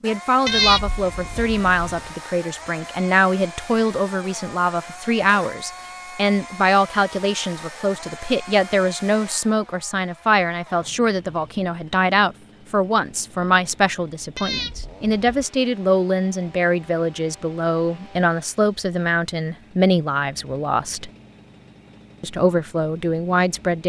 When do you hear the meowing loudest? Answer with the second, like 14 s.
1 s.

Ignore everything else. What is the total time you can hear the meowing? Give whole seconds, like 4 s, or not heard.
3 s.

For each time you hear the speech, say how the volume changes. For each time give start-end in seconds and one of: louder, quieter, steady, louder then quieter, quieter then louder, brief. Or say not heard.
0.0-21.1 steady
22.2-23.8 brief.